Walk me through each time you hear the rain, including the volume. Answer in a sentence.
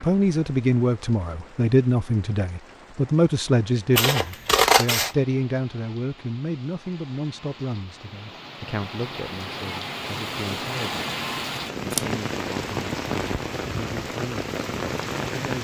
You can hear the rain from 0.0 to 15.5 s, getting louder.